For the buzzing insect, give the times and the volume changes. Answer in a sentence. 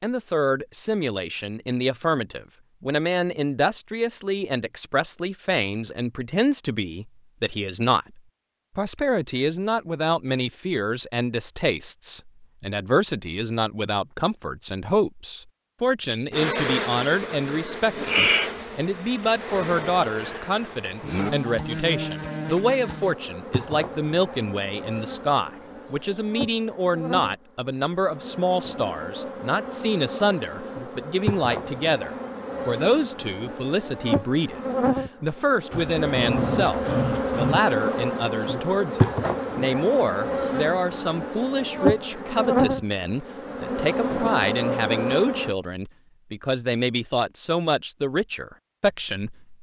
You can hear the buzzing insect from 16.3 to 45.5 s, getting quieter then louder.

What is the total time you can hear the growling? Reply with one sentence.
The growling can be heard for 2 seconds in total.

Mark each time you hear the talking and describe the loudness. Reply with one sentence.
You can hear the talking from 0.0 to 49.5 s, at a steady volume.